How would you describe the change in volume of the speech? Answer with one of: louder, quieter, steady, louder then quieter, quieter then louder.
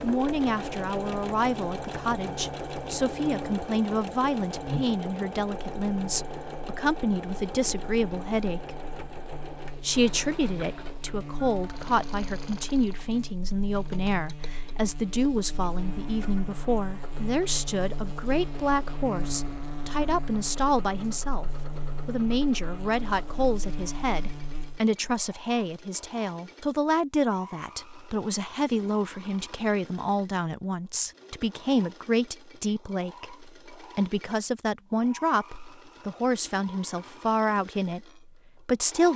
steady.